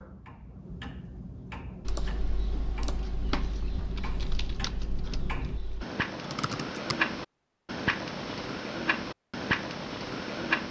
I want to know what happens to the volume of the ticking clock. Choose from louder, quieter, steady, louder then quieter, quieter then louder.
louder.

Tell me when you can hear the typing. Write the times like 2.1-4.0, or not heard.
1.8-7.0.